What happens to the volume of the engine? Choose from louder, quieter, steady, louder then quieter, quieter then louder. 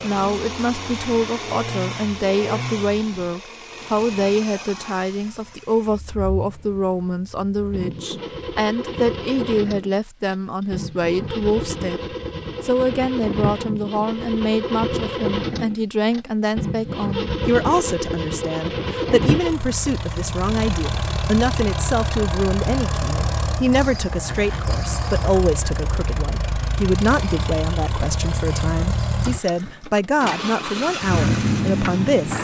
louder.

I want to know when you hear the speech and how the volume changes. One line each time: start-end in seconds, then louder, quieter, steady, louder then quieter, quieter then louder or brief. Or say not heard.
0.0-12.0 steady
12.6-32.3 steady.